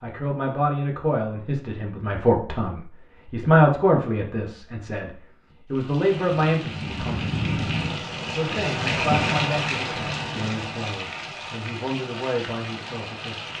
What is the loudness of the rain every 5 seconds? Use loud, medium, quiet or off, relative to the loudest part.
off, loud, medium.